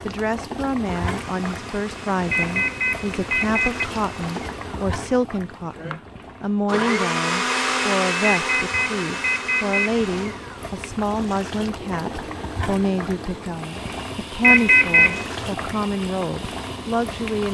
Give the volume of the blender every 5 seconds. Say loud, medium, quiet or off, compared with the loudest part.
quiet, loud, quiet, quiet.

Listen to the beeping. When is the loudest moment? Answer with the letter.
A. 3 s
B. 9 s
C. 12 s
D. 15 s
D.